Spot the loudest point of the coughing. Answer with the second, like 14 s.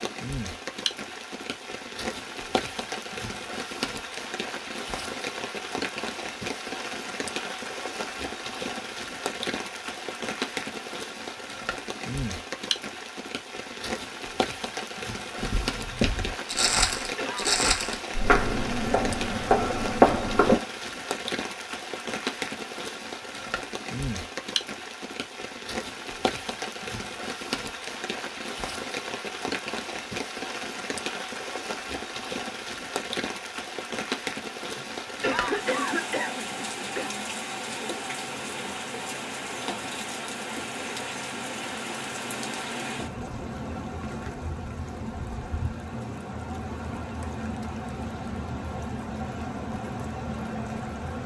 35 s.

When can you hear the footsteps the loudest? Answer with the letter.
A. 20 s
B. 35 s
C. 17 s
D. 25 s
A.